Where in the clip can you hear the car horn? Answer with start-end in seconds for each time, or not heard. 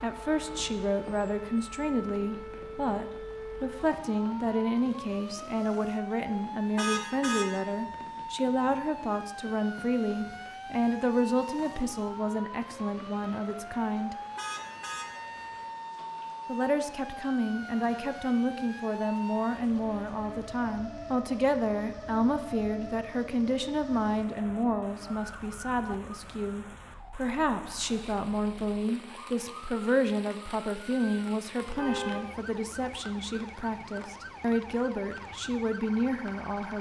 6.8-7.5, 14.3-15.1, 31.6-32.2.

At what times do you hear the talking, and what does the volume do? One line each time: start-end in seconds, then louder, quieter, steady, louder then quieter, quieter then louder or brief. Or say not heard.
0.0-14.2 steady
16.4-36.7 steady.